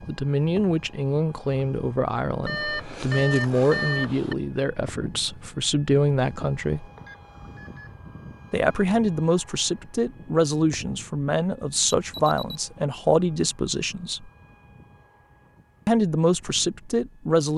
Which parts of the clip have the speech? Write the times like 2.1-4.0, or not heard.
0.1-6.8, 8.5-14.3, 15.8-17.5.